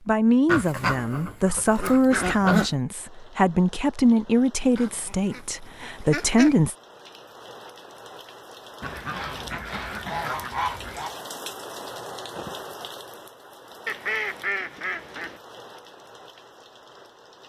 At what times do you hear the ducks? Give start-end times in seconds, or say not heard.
0.5-2.8, 4.8-6.6, 8.8-11.2, 13.8-15.4.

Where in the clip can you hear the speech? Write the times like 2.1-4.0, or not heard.
0.1-6.8.